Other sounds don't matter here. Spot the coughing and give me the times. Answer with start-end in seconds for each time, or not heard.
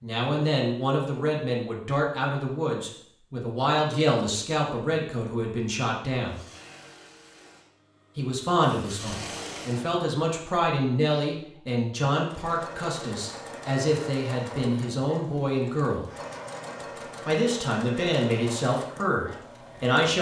not heard.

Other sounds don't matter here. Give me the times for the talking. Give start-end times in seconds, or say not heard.
0.0-6.5, 8.2-16.1, 17.2-20.1.